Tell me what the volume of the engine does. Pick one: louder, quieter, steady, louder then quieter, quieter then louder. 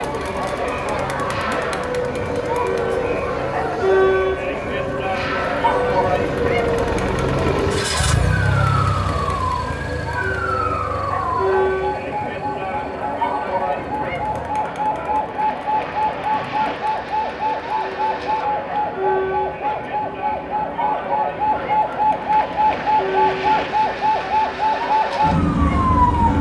louder then quieter.